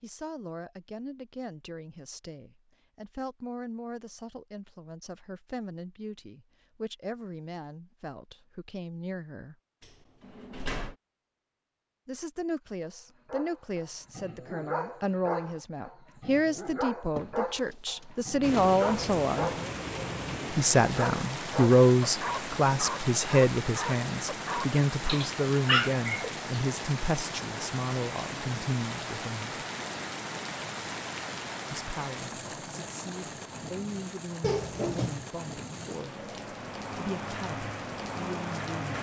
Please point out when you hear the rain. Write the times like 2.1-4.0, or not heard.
18.4-38.9.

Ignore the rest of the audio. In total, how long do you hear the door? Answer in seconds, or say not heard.
4 s.